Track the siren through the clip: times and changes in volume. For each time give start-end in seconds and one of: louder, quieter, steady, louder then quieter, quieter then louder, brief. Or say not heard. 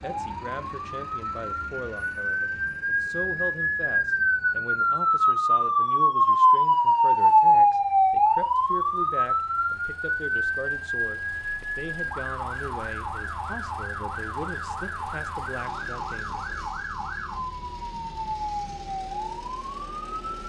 0.0-20.4 louder then quieter.